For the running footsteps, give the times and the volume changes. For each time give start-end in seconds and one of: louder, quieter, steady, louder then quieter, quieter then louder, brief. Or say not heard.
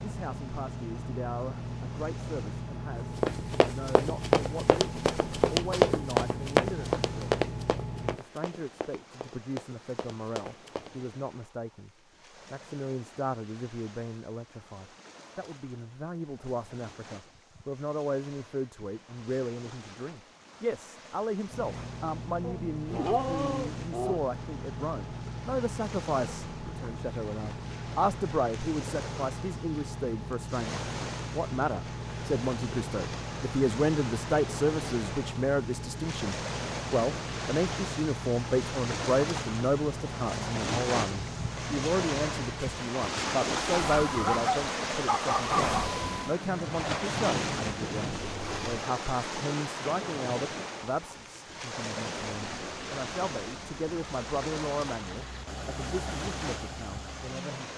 3.2-10.9 quieter.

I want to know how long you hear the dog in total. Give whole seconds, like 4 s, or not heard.
4 s.